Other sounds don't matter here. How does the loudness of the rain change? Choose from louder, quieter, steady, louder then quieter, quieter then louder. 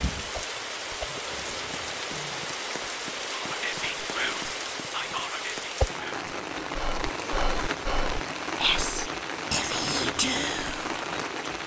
steady.